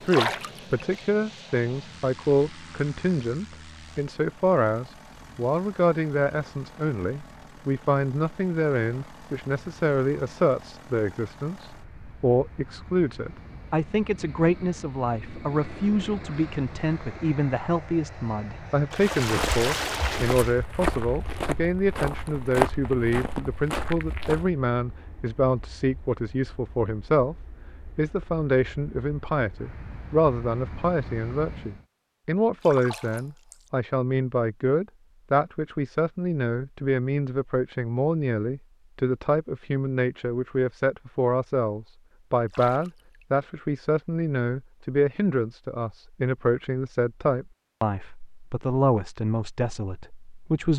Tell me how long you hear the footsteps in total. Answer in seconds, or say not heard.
5 s.